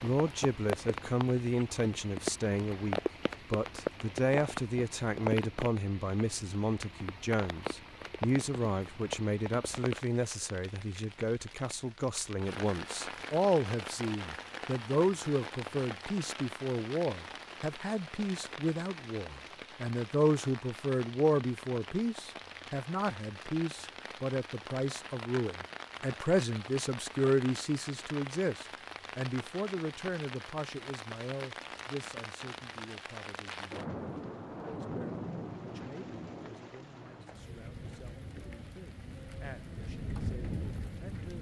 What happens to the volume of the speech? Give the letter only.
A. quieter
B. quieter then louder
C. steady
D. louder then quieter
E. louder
A.